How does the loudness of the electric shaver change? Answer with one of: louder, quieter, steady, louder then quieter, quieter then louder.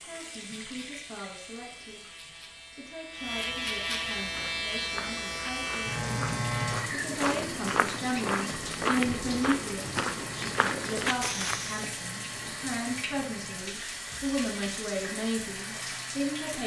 louder then quieter.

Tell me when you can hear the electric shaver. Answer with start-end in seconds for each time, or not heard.
0.0-16.6.